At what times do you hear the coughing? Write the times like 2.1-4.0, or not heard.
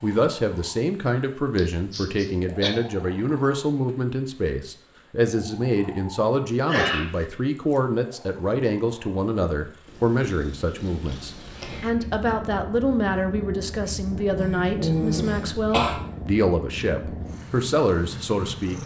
1.6-2.7, 6.7-7.2, 14.3-16.0.